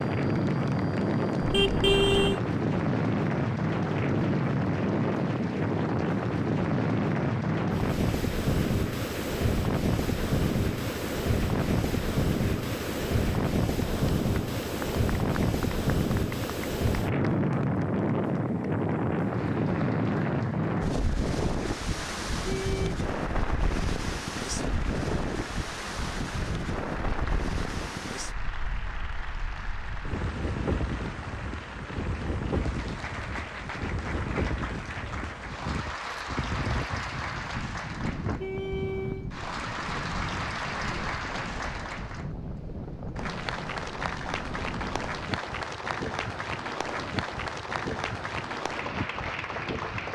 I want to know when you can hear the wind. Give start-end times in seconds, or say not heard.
0.0-50.1.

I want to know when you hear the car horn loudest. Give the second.
2 s.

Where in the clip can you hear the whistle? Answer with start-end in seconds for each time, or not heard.
not heard.